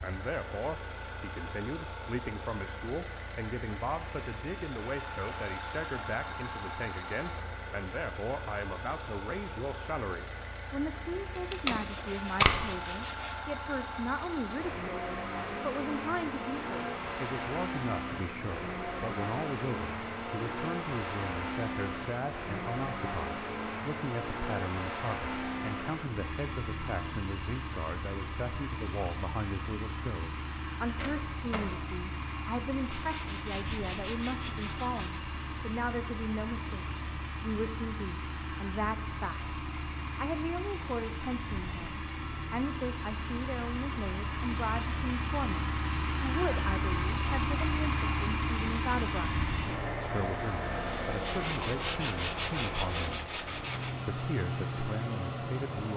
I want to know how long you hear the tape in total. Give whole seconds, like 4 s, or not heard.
2 s.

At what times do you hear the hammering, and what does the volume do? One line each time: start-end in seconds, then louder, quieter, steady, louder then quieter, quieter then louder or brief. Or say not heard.
not heard.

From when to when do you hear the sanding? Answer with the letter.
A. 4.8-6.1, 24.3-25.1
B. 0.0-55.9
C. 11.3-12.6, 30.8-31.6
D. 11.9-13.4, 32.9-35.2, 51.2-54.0
D.